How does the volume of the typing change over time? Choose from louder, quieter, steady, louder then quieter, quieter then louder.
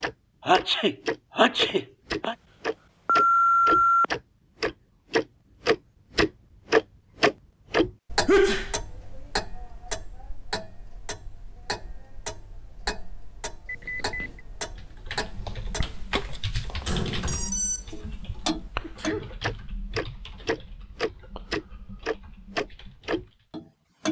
quieter.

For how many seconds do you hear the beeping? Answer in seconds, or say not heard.
4 s.